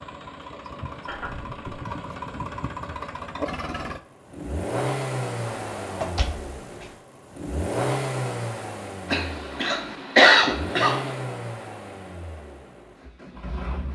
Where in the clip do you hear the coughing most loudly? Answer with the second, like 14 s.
10 s.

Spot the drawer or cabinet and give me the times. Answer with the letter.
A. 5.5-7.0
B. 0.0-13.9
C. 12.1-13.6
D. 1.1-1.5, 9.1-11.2
A.